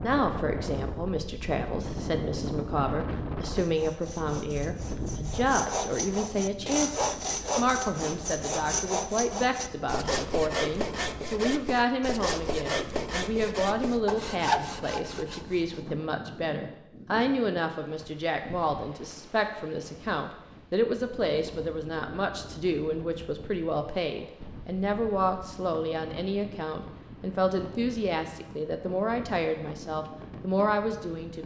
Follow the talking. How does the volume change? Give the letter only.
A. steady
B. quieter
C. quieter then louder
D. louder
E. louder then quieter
A.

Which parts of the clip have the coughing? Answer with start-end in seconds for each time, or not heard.
not heard.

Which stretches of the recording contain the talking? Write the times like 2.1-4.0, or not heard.
0.0-31.4.